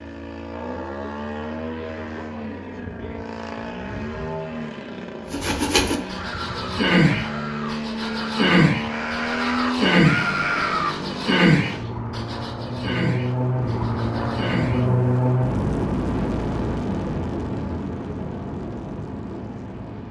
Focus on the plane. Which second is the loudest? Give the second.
15 s.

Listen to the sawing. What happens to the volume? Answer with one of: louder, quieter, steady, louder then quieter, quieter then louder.
quieter.